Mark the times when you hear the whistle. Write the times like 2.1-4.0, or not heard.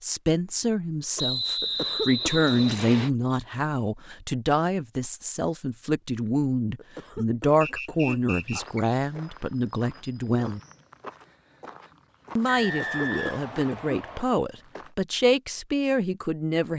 1.1-3.1, 7.6-8.8, 12.4-14.2.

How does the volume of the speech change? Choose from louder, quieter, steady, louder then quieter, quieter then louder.
steady.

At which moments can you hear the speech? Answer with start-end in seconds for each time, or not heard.
0.0-10.6, 12.3-16.7.